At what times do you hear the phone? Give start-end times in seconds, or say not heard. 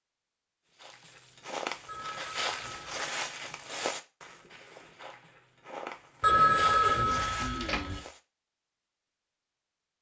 1.9-3.0, 6.2-8.0.